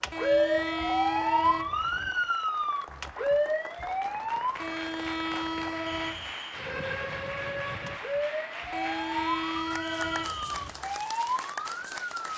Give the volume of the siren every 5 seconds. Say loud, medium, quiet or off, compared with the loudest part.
loud, medium, medium.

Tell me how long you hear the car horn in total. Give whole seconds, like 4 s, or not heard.
6 s.